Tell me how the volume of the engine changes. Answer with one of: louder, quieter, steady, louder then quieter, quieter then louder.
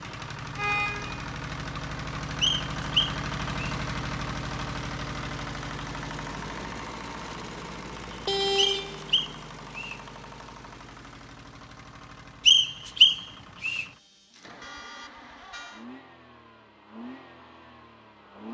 quieter.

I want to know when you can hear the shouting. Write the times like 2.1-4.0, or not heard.
not heard.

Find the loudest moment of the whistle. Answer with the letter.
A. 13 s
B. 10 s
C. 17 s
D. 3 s
A.